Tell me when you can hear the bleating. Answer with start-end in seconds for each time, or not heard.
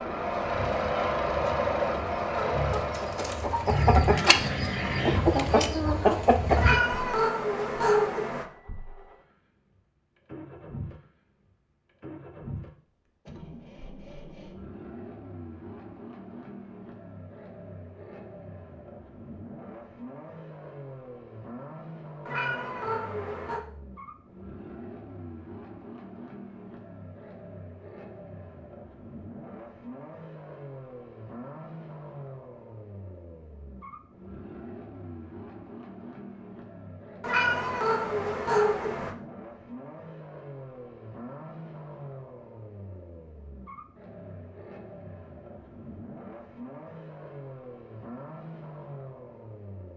not heard.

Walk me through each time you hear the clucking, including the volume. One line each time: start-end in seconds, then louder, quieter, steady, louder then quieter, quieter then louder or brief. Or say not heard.
0.3-6.8 louder.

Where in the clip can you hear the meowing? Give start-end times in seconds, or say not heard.
6.5-8.4, 22.2-23.6, 37.2-39.1.